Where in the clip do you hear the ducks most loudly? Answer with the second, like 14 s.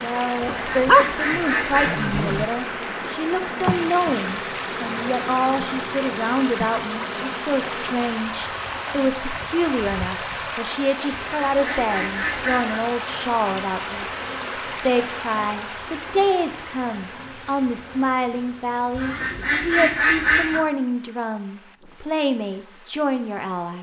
20 s.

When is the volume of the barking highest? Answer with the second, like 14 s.
1 s.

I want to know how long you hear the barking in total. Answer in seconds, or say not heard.
2 s.